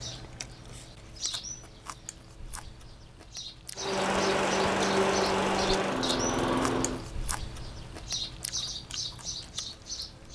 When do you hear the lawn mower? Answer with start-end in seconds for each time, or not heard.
3.8-7.0.